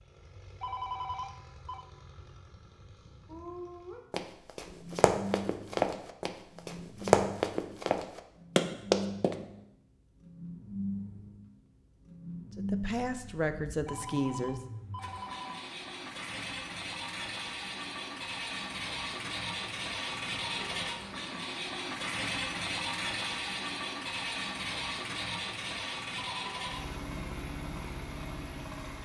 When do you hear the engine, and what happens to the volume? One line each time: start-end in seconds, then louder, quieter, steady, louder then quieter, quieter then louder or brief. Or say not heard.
0.0-28.9 louder.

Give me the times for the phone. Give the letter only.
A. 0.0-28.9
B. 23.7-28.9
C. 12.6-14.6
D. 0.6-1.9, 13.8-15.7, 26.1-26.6
D.